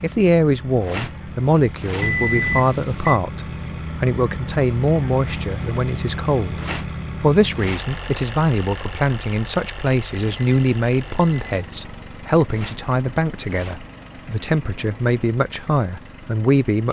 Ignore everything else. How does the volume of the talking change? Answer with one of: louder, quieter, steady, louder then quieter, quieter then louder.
steady.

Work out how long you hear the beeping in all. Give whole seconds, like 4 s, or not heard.
3 s.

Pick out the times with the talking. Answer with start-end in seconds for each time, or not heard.
0.0-6.6, 7.2-16.8.